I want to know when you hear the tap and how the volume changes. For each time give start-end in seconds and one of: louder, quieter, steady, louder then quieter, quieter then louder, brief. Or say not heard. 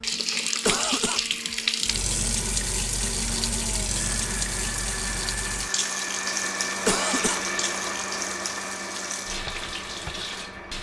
0.0-10.7 quieter.